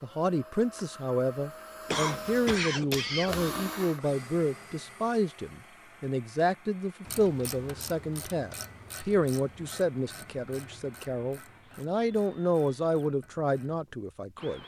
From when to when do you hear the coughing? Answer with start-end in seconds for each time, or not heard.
1.9-3.7.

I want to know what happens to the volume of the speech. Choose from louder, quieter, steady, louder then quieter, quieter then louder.
steady.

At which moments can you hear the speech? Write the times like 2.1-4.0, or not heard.
0.0-14.6.